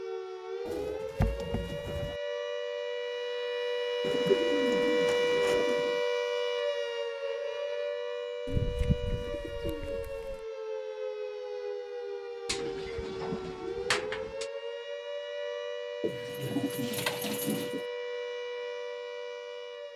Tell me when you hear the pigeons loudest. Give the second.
4 s.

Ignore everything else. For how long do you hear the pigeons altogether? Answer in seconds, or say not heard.
9 s.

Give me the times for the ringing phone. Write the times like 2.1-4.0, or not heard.
not heard.